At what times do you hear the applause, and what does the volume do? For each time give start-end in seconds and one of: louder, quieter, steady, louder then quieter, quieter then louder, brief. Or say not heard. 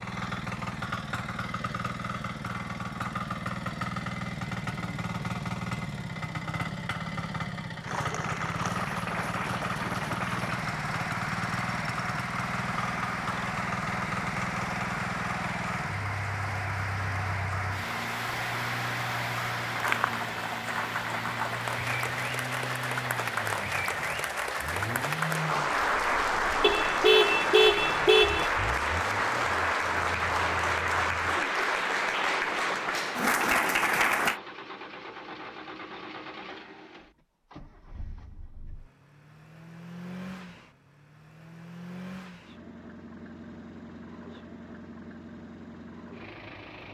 7.8-34.4 louder.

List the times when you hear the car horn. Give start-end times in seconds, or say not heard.
26.6-28.5.